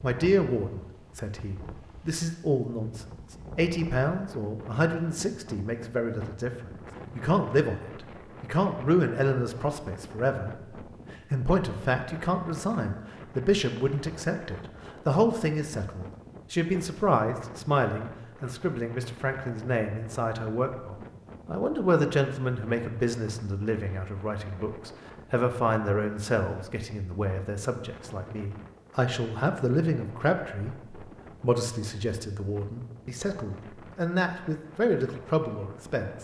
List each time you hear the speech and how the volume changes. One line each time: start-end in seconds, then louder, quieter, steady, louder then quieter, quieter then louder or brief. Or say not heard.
0.0-36.1 steady.